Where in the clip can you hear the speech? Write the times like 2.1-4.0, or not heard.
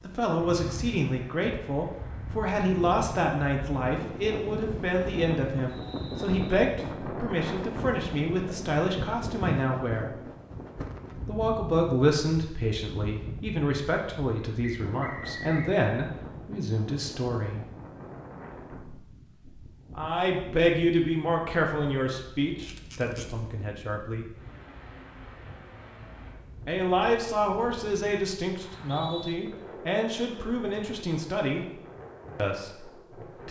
0.0-10.1, 11.2-17.6, 19.9-24.2, 26.6-31.6, 32.4-33.4.